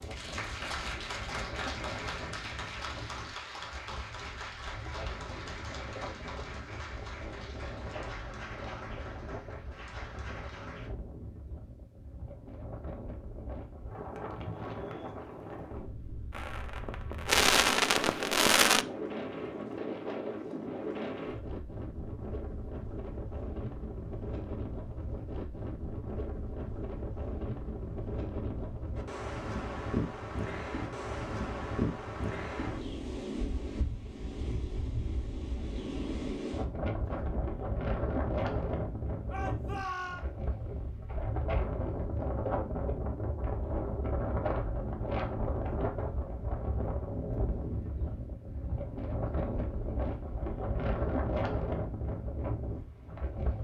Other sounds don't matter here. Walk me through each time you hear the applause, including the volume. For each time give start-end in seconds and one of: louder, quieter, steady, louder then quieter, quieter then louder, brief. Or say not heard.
0.0-10.9 quieter.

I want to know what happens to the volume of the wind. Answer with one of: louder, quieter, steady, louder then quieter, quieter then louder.
louder.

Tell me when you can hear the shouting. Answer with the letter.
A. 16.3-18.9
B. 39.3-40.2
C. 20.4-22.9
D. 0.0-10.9
B.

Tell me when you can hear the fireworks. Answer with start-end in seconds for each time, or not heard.
16.3-18.9.